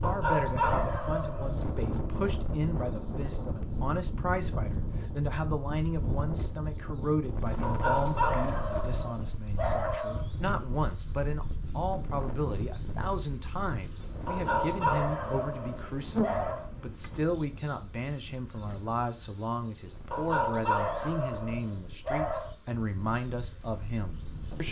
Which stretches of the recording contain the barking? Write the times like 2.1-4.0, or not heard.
0.0-1.6, 7.6-10.2, 14.2-16.7, 20.1-22.6.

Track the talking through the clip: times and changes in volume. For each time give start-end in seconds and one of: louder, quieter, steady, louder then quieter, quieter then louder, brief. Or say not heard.
0.0-24.6 steady.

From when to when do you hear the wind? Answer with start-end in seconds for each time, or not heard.
0.0-24.6.